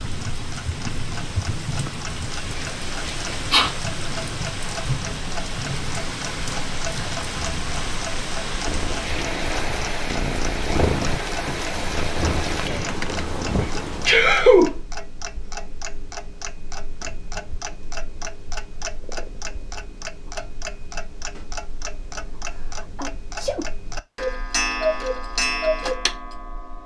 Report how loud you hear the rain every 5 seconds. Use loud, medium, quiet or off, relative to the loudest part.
loud, loud, loud, off, off, off.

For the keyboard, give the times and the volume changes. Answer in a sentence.
You can't hear the keyboard here.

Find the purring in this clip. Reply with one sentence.
You can hear the purring from 8.6 to 14.1 s.